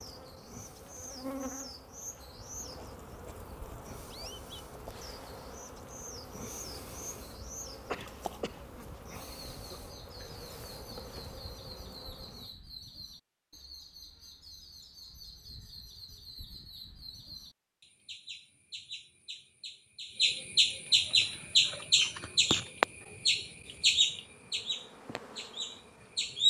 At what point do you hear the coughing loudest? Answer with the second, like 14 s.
8 s.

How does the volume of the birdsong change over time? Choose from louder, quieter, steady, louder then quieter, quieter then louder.
louder.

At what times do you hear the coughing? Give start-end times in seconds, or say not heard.
7.8-9.8.